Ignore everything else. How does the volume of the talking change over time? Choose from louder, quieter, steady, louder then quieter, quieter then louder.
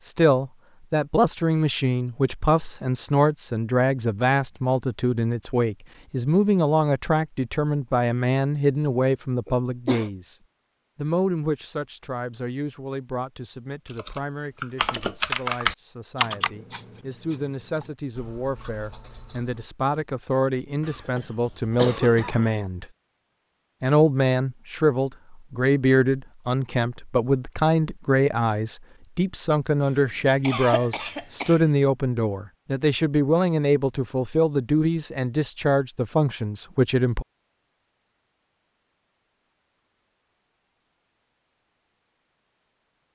quieter then louder.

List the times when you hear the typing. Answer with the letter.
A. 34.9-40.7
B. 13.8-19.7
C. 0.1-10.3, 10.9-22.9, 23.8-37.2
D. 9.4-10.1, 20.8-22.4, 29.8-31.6
B.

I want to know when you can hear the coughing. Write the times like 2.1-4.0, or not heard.
9.4-10.1, 20.8-22.4, 29.8-31.6.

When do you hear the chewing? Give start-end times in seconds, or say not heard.
not heard.